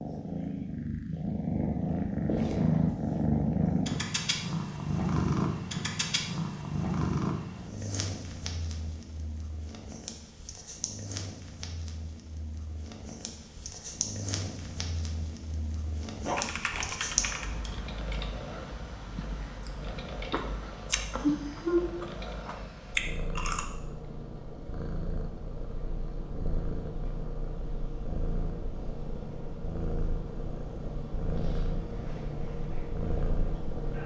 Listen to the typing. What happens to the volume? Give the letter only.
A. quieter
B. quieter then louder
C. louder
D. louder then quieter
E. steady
A.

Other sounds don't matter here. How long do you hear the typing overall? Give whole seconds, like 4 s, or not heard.
6 s.